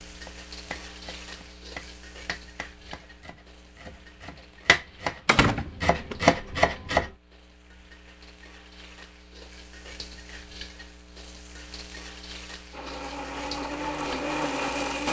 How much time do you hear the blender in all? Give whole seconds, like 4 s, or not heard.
2 s.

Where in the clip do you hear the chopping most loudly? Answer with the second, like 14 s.
6 s.